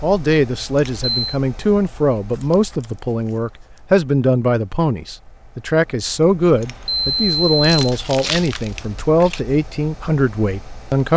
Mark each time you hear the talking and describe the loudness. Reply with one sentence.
You can hear the talking from 0.0 to 11.1 s, at a steady volume.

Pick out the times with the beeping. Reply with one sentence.
You can hear the beeping from 0.8 to 1.4 s and from 6.6 to 7.8 s.